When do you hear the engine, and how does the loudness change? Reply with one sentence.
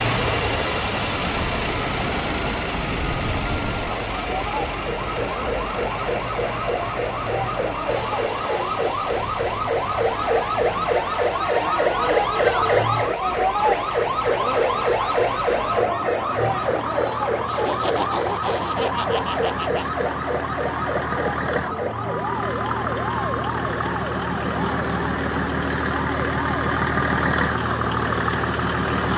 The engine can be heard from 0.0 to 29.1 s, getting quieter then louder.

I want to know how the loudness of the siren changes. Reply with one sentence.
The volume of the siren goes up, then down.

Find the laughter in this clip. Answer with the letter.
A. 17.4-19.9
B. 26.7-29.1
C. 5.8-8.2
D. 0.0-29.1
A.